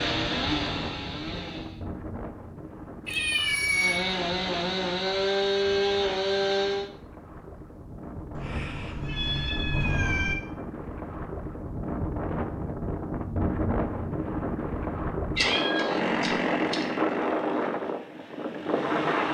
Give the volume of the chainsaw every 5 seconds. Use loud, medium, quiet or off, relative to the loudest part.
medium, loud, off, medium.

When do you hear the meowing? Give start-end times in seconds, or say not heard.
3.0-4.0, 8.3-10.3, 15.3-16.8.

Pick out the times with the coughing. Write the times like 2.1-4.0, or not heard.
not heard.